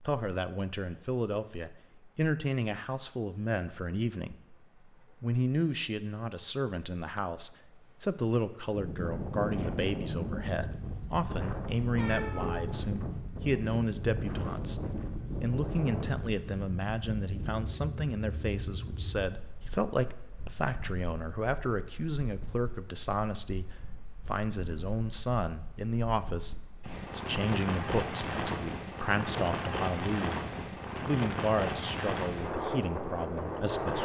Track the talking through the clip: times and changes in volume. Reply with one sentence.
The talking can be heard from 0.0 to 30.4 s, at a steady volume; and briefly from 31.1 to 34.0 s.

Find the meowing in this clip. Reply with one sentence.
You can hear the meowing from 11.9 to 12.9 s.